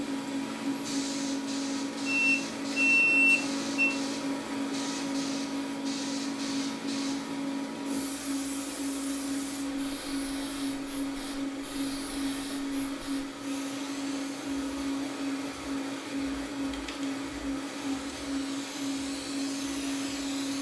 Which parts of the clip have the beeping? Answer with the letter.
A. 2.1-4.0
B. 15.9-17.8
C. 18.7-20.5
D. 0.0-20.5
A.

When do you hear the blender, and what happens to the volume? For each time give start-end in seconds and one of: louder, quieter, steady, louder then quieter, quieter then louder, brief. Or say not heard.
0.0-20.5 steady.